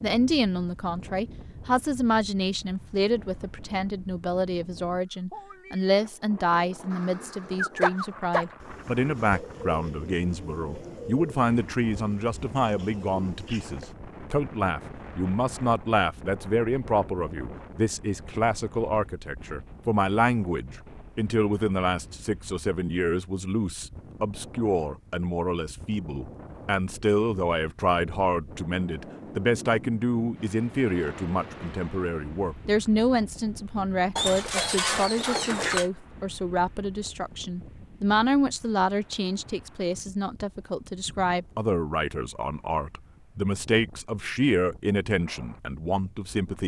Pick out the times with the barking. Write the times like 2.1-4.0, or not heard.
6.9-8.4, 34.1-35.9.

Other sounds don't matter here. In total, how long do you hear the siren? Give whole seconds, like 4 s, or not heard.
not heard.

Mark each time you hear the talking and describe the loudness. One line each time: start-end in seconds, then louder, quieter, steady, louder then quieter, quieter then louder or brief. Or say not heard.
0.0-46.6 steady.